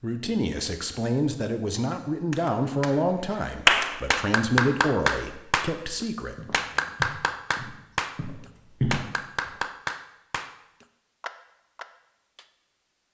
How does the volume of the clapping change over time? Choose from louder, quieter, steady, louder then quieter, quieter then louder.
quieter.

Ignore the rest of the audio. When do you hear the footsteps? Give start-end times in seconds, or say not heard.
6.3-9.6.